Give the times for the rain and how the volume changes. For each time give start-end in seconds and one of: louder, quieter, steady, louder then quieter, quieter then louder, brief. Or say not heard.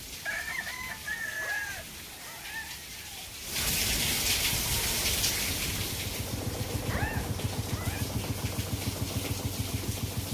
0.0-10.3 louder then quieter.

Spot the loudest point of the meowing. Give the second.
7 s.